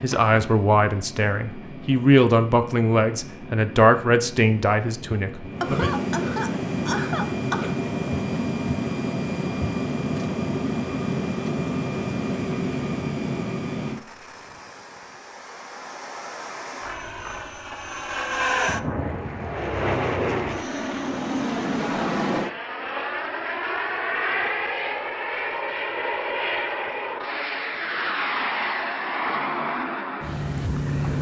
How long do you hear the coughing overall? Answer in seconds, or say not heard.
2 s.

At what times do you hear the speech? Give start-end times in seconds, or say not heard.
0.0-5.9.